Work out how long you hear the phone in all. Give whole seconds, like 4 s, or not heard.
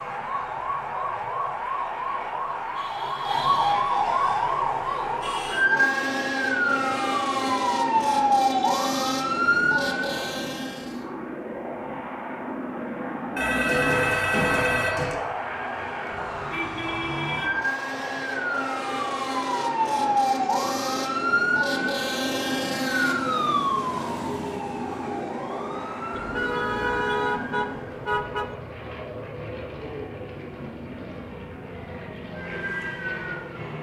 2 s.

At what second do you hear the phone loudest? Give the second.
14 s.